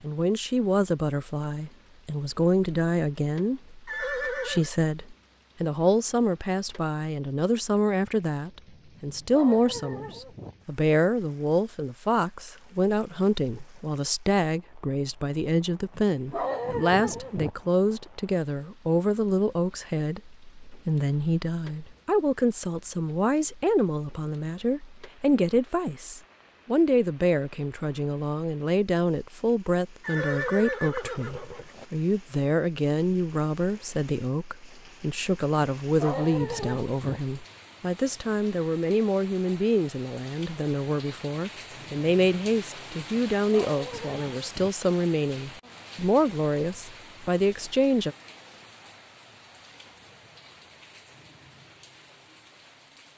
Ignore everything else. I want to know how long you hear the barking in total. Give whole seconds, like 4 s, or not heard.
6 s.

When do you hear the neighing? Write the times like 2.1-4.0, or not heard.
3.9-4.7, 30.0-31.9.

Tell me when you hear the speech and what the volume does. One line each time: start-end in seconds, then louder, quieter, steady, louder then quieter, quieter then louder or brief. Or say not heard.
0.0-48.1 steady.